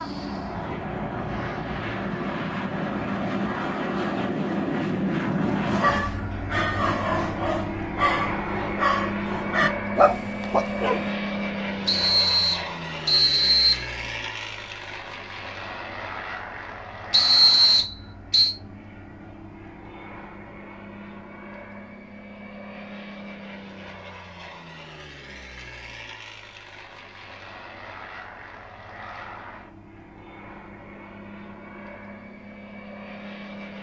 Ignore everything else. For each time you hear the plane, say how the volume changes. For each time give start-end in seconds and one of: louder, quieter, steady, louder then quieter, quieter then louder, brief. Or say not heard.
0.0-33.7 quieter.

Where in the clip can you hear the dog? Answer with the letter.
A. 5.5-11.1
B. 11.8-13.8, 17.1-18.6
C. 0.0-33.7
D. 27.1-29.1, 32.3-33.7
A.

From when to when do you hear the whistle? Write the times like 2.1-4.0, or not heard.
11.8-13.8, 17.1-18.6.